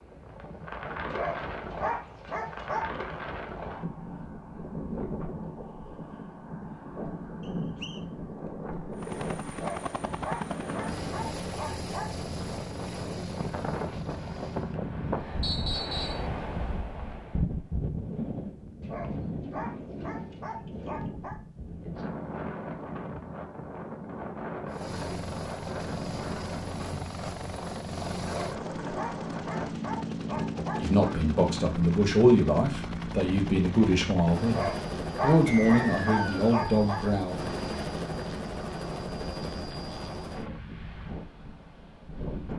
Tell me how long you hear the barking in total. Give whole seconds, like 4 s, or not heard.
13 s.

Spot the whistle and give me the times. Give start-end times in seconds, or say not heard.
7.5-8.0, 15.4-16.2, 35.5-36.4.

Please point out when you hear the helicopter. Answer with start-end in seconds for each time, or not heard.
8.9-14.8, 24.7-40.6.